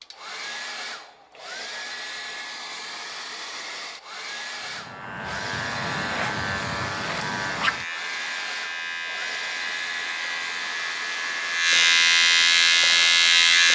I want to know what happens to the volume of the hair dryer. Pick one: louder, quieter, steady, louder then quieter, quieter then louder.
steady.